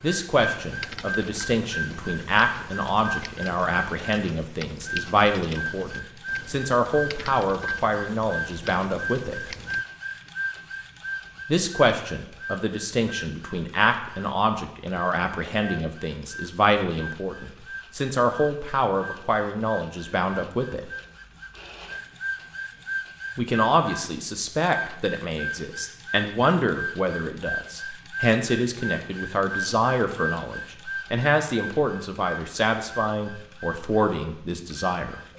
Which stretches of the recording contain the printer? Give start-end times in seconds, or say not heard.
0.0-35.3.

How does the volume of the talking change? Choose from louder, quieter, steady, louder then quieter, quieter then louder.
steady.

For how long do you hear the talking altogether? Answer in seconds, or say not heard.
31 s.